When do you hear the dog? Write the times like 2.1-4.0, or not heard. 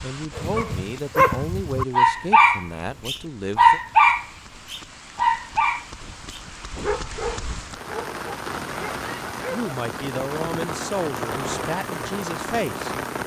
0.3-9.7.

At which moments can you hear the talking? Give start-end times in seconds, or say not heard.
0.0-3.8, 9.5-13.2.